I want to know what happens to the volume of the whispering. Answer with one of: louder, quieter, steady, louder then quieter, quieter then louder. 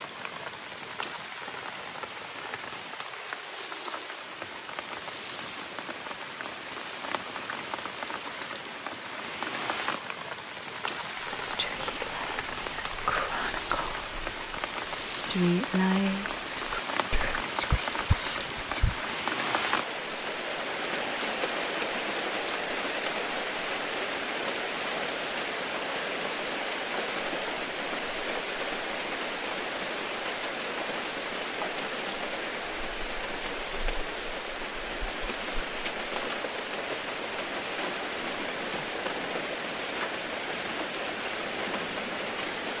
louder then quieter.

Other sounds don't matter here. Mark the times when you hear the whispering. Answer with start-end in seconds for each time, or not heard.
11.2-19.1.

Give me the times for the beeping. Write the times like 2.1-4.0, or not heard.
not heard.